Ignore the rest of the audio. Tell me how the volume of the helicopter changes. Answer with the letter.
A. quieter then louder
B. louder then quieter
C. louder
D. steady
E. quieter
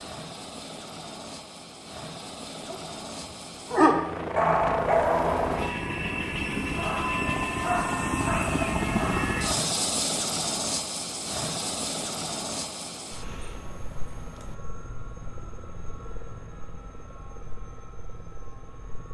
B.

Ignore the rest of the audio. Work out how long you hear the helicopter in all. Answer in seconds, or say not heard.
19 s.